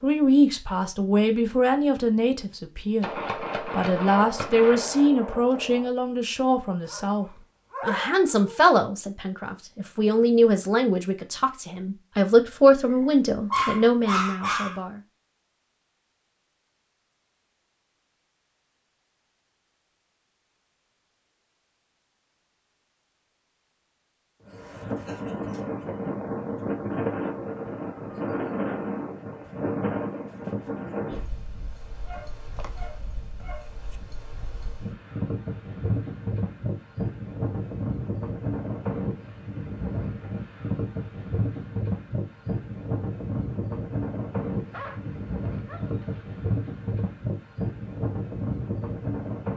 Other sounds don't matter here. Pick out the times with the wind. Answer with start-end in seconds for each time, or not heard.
24.4-49.5.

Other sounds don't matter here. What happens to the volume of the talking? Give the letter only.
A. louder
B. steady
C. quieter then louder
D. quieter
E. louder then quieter
B.